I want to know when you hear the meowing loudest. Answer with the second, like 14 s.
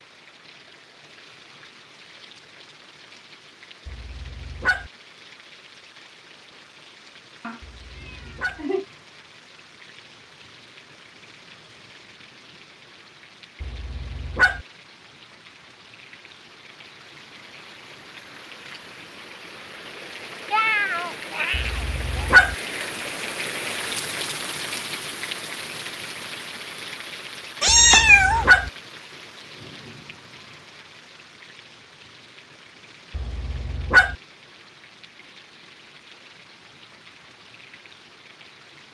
28 s.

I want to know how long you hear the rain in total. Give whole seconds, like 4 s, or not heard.
39 s.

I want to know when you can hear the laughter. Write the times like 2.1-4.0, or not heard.
not heard.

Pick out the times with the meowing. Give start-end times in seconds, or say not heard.
7.4-8.8, 20.5-22.3, 27.6-28.4.